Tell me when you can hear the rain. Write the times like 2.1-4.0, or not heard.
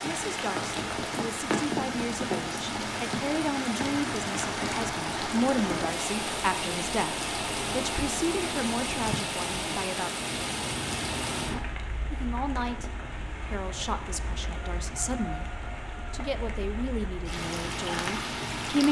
0.0-18.8.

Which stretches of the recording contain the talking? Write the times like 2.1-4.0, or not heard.
0.0-10.1, 12.1-18.8.